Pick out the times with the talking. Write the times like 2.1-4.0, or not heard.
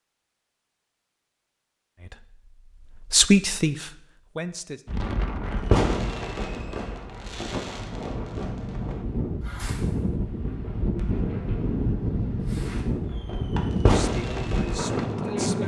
1.9-4.8, 13.8-15.6.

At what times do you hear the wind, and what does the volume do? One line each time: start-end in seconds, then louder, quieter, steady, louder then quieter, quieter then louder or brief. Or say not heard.
4.8-15.6 louder.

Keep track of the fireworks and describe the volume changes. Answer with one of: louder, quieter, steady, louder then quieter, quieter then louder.
quieter then louder.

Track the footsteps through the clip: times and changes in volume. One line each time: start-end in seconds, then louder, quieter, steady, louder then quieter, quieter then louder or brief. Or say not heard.
not heard.